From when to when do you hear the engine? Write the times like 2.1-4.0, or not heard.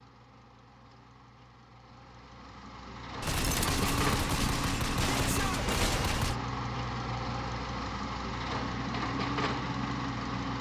0.0-10.5.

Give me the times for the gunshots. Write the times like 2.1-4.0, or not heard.
3.2-6.3.